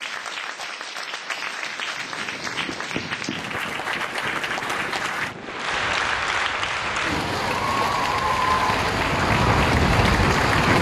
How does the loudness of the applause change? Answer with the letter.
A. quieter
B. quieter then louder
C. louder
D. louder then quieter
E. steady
C.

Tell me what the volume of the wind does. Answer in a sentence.
The volume of the wind goes up.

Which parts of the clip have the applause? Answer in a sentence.
You can hear the applause from 0.0 to 10.7 s.